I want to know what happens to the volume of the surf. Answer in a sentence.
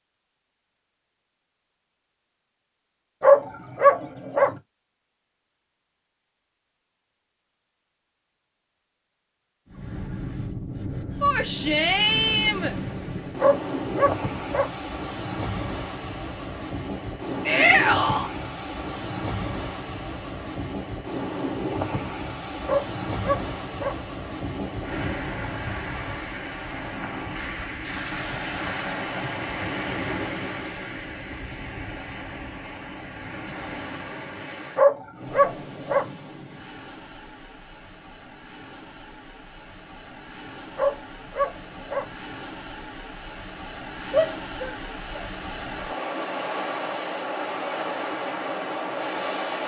The loudness of the surf goes down, then up.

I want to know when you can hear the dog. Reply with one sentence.
The dog can be heard from 3.2 to 4.5 s, from 13.3 to 14.8 s, from 22.6 to 24.0 s, from 34.8 to 36.1 s and from 40.8 to 42.1 s.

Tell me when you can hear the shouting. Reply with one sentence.
The shouting can be heard from 11.2 to 12.8 s, from 17.4 to 18.3 s and from 44.1 to 45.2 s.